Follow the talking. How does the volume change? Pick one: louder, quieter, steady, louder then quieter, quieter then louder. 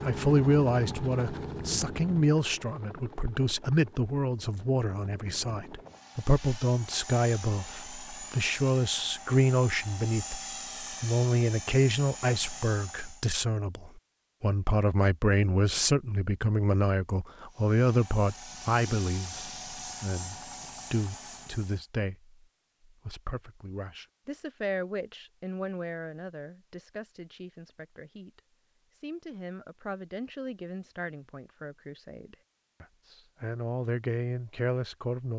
quieter.